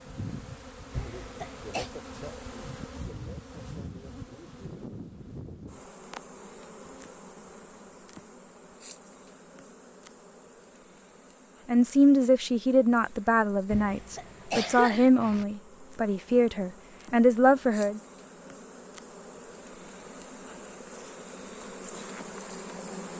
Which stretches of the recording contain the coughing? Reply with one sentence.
The coughing can be heard from 0.9 to 1.9 s and from 13.7 to 15.4 s.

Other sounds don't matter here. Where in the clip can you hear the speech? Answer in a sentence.
The speech can be heard from 11.7 to 18.0 s.